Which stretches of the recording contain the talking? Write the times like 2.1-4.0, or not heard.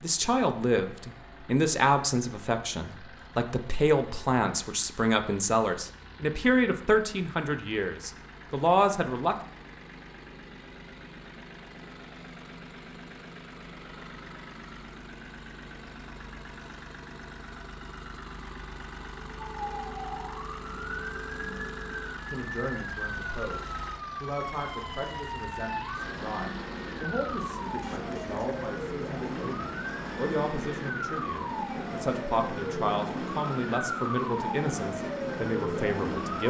0.0-9.3, 22.2-36.4.